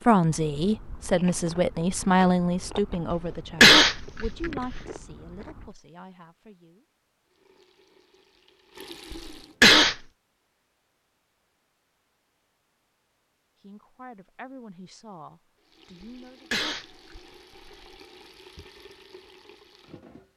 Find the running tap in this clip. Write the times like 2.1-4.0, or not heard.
7.2-9.6, 15.6-20.3.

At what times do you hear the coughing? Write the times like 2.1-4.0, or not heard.
3.1-4.8, 9.1-9.9, 16.0-17.9.